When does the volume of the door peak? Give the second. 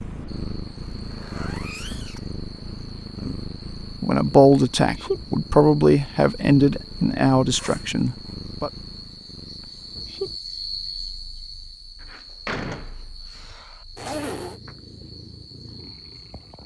13 s.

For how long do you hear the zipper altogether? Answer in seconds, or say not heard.
3 s.